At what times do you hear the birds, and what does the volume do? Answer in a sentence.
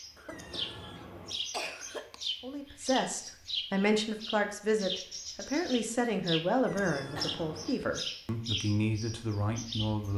You can hear the birds from 0.0 to 10.1 s, at a steady volume.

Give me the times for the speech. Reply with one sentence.
You can hear the speech from 2.4 to 10.1 s.